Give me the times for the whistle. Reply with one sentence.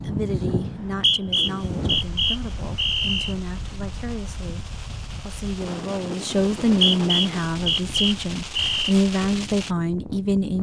The whistle can be heard from 0.6 to 3.4 s and from 6.6 to 8.9 s.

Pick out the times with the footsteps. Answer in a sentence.
The footsteps can't be heard in this clip.